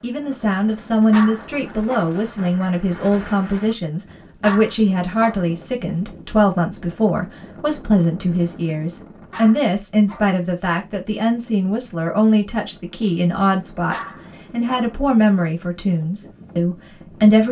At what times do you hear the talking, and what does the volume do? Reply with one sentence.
The talking can be heard from 0.0 to 17.4 s, at a steady volume.